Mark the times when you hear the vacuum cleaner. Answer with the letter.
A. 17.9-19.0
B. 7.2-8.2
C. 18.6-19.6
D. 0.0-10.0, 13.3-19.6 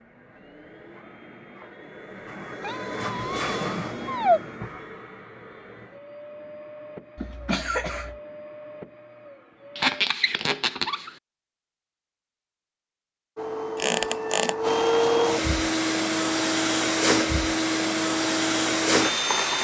D.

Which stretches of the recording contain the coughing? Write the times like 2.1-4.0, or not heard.
7.2-8.2.